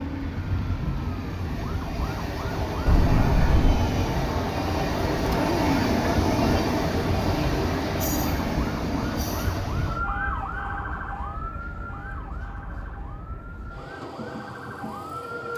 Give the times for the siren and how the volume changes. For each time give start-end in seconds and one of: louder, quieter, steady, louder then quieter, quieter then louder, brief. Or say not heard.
0.0-15.5 quieter.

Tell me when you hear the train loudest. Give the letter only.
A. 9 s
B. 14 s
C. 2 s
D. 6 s
D.